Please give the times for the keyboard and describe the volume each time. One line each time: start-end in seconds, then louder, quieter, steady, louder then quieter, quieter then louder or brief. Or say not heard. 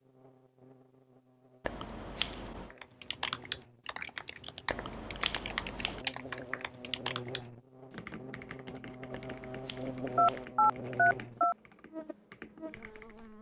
2.7-13.3 quieter.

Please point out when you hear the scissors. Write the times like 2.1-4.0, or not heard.
1.6-2.6, 4.7-6.0, 9.1-10.4.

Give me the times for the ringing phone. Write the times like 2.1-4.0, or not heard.
10.2-11.6.